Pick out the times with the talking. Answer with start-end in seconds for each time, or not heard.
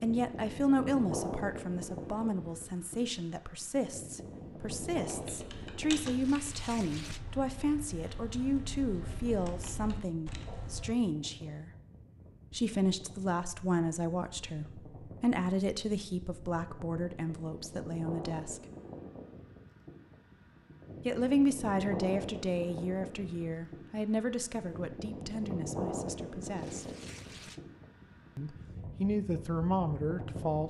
0.0-11.7, 12.5-18.6, 21.1-26.9, 28.4-30.6.